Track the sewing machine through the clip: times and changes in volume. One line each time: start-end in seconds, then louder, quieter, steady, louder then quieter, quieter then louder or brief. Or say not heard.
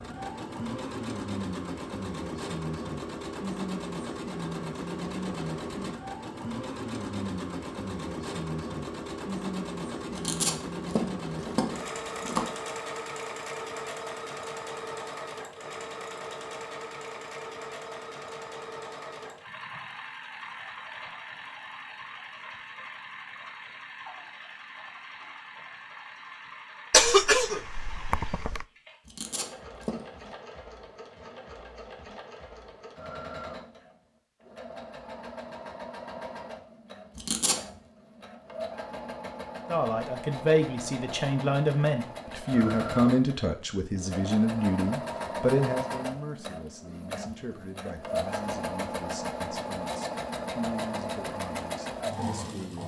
0.0-52.8 quieter then louder.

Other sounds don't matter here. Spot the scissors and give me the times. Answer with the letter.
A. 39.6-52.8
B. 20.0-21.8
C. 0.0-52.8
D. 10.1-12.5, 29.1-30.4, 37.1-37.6
D.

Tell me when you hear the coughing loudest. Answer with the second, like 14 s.
27 s.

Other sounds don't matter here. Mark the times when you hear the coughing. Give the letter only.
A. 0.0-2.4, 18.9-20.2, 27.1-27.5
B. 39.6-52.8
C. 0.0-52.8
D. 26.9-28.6
D.